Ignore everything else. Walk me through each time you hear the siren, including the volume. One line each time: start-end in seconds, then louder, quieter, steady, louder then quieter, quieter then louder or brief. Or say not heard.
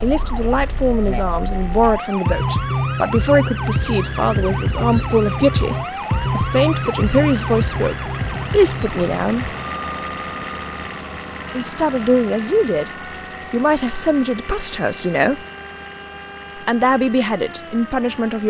0.0-18.4 quieter.